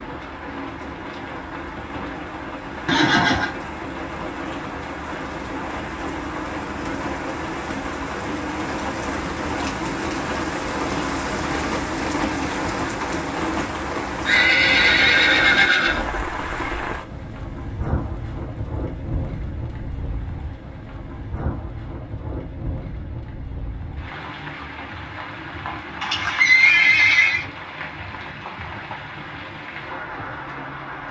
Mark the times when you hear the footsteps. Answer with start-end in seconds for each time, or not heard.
not heard.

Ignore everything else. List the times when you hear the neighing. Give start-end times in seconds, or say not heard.
2.9-3.5, 14.2-16.1, 26.0-27.4.